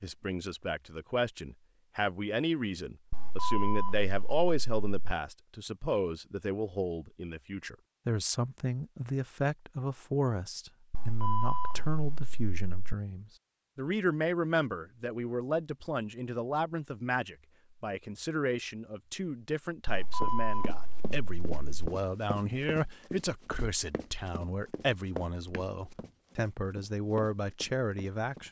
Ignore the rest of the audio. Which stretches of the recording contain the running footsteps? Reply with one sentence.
You can hear the running footsteps from 20.2 to 28.4 s.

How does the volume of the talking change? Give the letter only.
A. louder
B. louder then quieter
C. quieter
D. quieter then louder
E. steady
E.